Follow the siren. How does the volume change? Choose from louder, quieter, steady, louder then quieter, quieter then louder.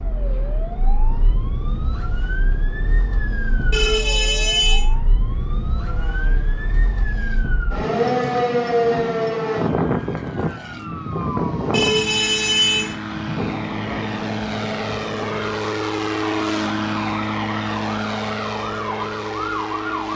louder then quieter.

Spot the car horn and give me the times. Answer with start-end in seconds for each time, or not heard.
3.7-4.8, 11.7-13.0.